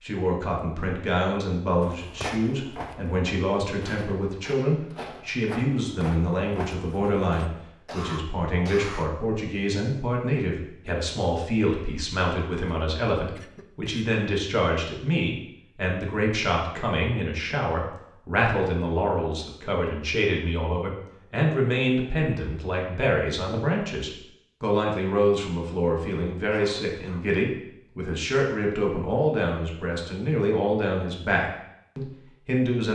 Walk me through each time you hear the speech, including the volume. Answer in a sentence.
You can hear the speech from 0.0 to 32.9 s, at a steady volume.